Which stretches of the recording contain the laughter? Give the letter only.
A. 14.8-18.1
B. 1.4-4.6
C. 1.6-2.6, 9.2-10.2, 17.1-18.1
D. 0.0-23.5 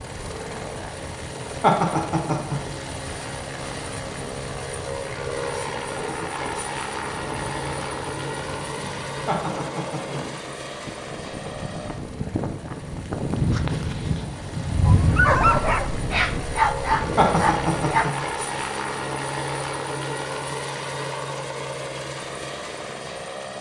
C.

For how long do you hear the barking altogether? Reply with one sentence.
The barking can be heard for 3 seconds in total.